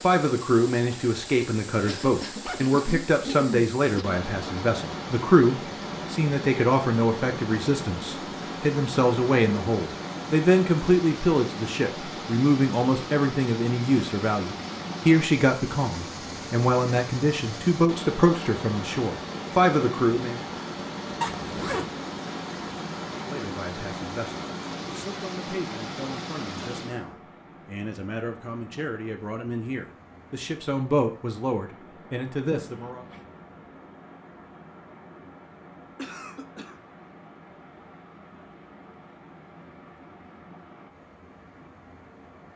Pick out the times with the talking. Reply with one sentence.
You can hear the talking from 0.0 to 20.4 s and from 23.1 to 33.0 s.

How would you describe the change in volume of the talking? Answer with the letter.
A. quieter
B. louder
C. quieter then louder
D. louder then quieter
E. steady
A.